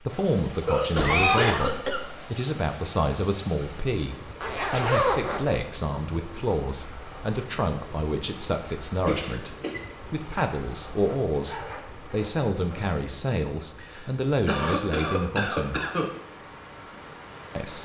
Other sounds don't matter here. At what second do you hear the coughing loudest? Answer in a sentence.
The volume of the coughing peaks at 1 second.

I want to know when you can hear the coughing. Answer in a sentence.
You can hear the coughing from 0.7 to 2.1 s, from 9.1 to 9.8 s and from 13.8 to 16.1 s.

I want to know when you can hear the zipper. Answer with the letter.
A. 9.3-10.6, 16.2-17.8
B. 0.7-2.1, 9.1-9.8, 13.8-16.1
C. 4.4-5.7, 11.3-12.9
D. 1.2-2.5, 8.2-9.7
C.